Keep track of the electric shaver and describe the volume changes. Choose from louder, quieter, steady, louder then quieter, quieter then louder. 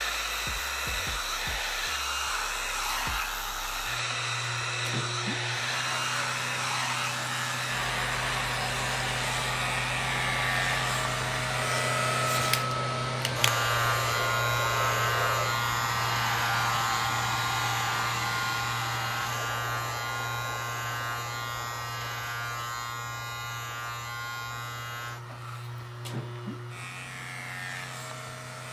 louder then quieter.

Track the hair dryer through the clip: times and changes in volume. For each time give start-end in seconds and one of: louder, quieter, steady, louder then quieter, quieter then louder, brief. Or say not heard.
0.0-28.6 quieter.